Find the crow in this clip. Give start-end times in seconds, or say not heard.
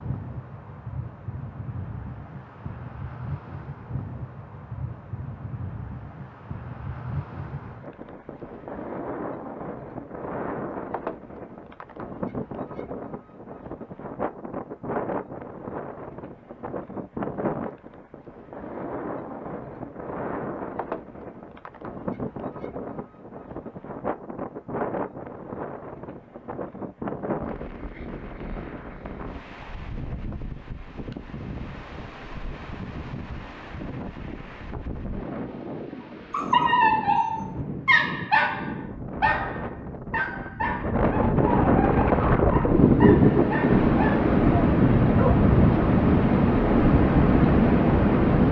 not heard.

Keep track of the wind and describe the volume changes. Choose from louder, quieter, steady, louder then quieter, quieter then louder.
louder.